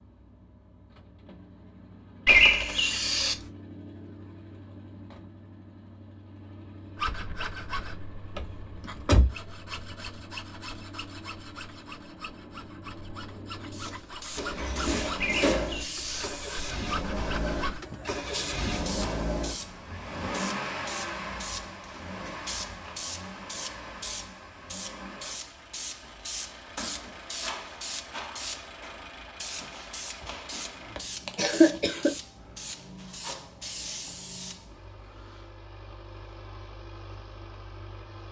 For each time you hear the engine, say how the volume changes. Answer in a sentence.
The engine can be heard from 0.0 to 38.2 s, getting louder then quieter.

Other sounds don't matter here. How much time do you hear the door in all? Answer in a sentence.
You can hear the door for 3 seconds altogether.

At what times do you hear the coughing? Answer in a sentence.
You can hear the coughing from 2.2 to 3.5 s, from 15.2 to 16.3 s and from 31.4 to 32.1 s.